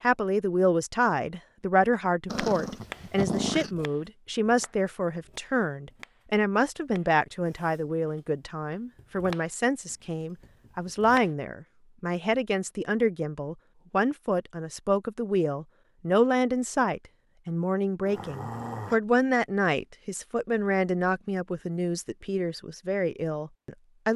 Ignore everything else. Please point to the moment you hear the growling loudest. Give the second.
3 s.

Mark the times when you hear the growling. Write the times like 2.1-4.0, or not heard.
2.2-3.7, 18.1-19.0.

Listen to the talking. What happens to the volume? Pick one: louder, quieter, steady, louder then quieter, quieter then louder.
steady.